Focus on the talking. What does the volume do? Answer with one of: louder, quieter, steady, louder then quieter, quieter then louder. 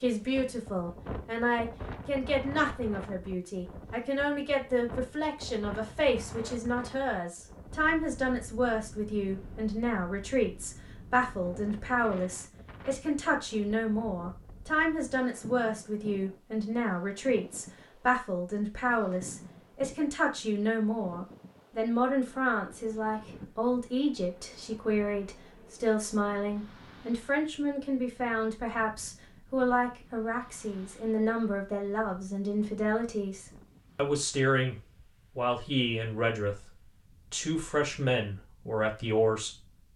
steady.